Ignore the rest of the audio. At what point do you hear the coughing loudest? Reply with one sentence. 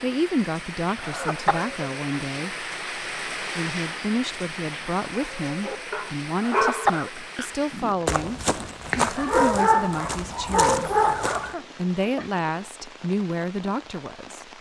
The loudest moment of the coughing is at 7 seconds.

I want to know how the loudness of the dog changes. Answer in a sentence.
The volume of the dog goes down, then up.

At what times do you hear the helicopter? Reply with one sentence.
The helicopter can't be heard in this clip.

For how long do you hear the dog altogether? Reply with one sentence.
The dog can be heard for 6 seconds in total.